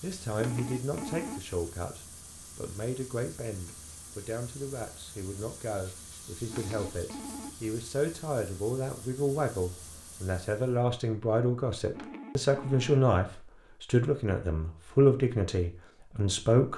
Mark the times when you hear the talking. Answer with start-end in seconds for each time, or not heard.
0.0-16.7.